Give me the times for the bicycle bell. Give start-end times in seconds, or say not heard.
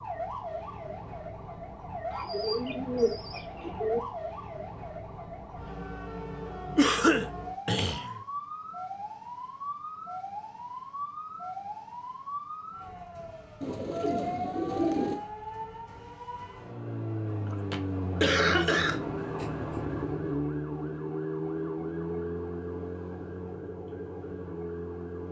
not heard.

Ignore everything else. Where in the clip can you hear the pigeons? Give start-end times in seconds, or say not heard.
2.1-4.0, 13.6-15.2.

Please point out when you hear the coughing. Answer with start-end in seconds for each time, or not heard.
6.8-8.2, 17.3-19.5.